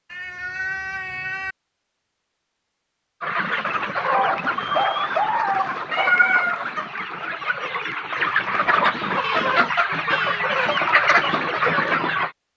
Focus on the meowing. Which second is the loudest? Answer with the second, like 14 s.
6 s.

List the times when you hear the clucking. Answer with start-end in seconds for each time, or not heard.
3.2-12.3.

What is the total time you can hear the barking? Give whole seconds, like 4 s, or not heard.
2 s.